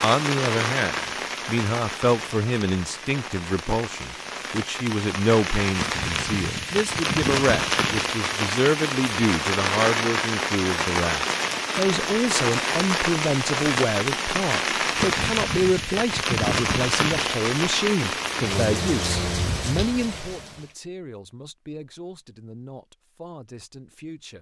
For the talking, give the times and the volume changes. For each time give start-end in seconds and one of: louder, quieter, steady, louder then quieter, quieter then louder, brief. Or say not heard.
0.0-24.3 quieter.